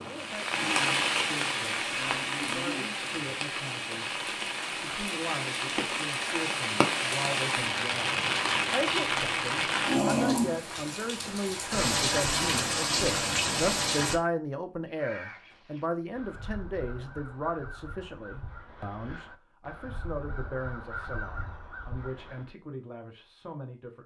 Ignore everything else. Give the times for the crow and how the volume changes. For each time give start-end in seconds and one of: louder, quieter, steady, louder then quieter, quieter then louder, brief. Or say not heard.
14.8-22.6 louder.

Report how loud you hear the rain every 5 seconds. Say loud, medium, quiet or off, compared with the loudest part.
loud, loud, loud, off, off.